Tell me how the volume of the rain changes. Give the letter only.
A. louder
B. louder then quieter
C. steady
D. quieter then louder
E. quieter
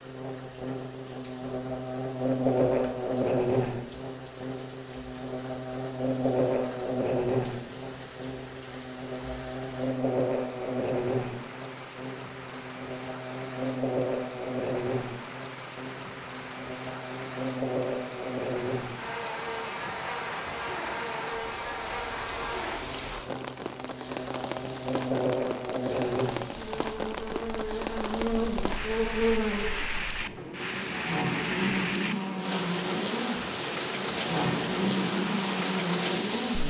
A.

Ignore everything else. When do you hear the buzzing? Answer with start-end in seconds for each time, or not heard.
0.0-36.6.